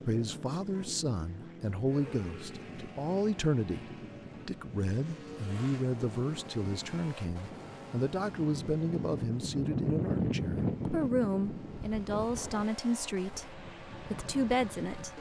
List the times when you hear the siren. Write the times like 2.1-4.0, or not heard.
not heard.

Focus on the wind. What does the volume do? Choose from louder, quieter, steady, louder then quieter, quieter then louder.
louder then quieter.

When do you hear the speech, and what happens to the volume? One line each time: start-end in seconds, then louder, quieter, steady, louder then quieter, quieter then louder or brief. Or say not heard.
0.1-15.1 steady.